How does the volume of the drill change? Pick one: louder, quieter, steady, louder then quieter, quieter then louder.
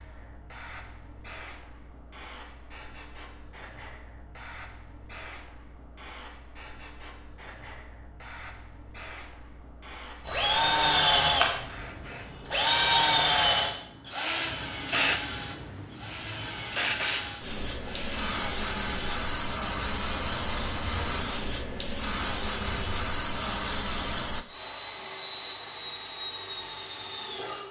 quieter.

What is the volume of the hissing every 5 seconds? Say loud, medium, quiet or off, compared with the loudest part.
quiet, quiet, medium, loud, loud, off.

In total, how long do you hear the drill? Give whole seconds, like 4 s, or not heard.
17 s.